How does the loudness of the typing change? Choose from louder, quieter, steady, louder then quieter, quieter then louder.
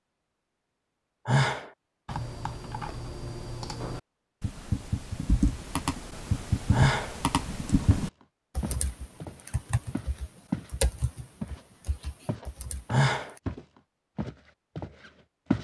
louder then quieter.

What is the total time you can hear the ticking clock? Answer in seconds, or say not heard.
not heard.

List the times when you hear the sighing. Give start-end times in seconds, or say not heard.
1.2-1.7, 6.7-7.2, 12.9-13.3.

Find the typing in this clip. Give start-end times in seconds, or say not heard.
2.0-13.4.